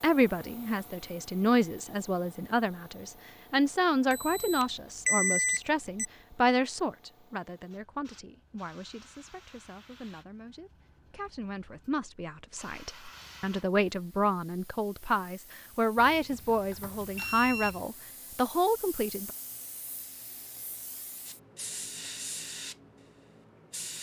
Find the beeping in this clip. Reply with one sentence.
The beeping can be heard from 4.1 to 6.0 s and from 15.9 to 17.9 s.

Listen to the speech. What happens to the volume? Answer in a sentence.
The loudness of the speech goes down, then up.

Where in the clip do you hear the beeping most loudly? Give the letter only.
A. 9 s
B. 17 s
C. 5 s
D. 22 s
C.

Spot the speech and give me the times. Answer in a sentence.
You can hear the speech from 0.0 to 19.3 s.